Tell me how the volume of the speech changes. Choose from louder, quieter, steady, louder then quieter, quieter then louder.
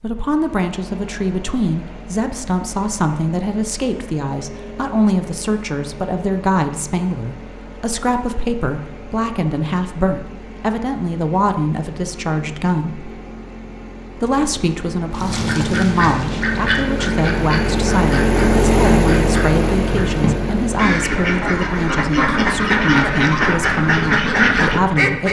steady.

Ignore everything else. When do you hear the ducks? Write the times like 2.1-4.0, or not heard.
15.1-25.2.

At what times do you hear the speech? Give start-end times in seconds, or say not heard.
0.0-13.1, 14.2-25.2.